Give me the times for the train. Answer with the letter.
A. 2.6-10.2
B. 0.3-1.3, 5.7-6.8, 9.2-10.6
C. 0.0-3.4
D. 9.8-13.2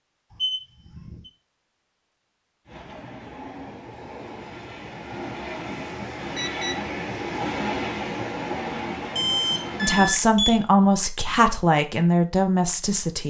A.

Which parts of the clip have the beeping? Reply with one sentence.
The beeping can be heard from 0.3 to 1.3 s, from 5.7 to 6.8 s and from 9.2 to 10.6 s.